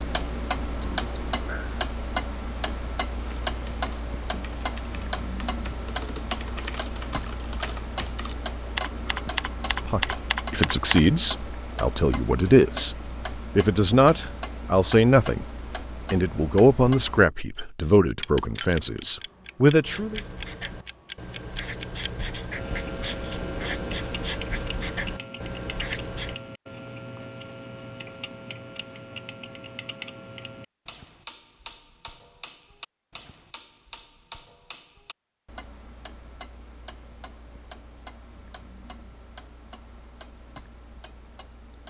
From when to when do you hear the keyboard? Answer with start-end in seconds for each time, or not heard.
3.2-11.0.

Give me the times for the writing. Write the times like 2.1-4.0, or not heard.
19.8-26.4.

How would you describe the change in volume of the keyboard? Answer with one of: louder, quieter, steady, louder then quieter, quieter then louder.
louder.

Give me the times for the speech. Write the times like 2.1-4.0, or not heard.
9.8-15.4, 16.1-20.2.